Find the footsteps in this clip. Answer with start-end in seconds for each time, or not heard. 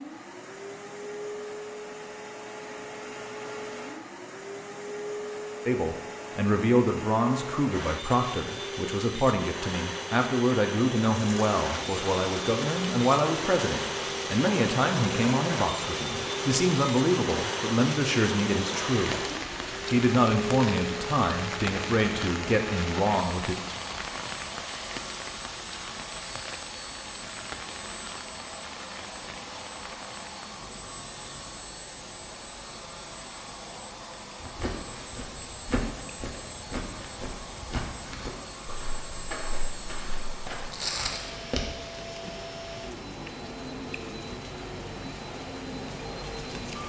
34.4-41.8.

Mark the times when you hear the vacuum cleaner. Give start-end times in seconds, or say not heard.
0.0-46.8.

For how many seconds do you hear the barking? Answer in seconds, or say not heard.
not heard.